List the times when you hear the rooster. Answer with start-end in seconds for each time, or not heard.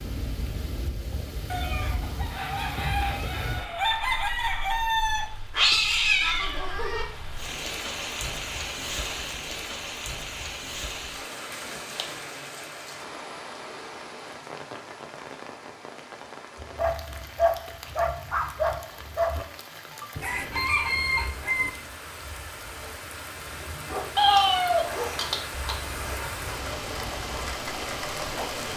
1.5-5.3, 20.1-21.7.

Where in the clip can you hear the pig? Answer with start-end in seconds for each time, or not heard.
not heard.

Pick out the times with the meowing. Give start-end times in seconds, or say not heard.
5.5-7.0, 24.1-26.1.